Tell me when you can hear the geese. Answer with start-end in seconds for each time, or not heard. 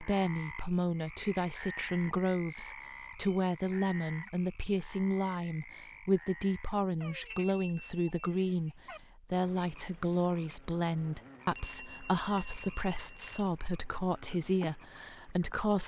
not heard.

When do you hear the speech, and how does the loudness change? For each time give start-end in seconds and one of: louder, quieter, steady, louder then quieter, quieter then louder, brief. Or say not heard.
0.0-15.8 steady.